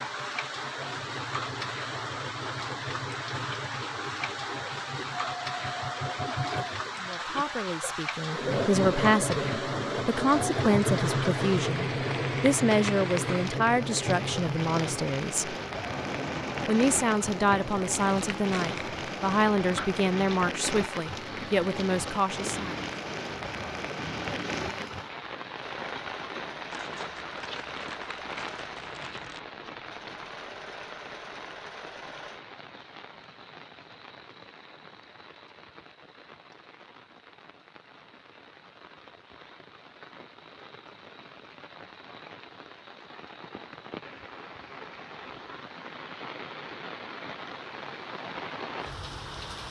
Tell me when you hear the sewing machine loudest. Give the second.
11 s.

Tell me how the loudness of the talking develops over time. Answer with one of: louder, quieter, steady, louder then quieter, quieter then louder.
steady.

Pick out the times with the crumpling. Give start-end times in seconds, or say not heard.
18.1-18.9, 26.7-29.4.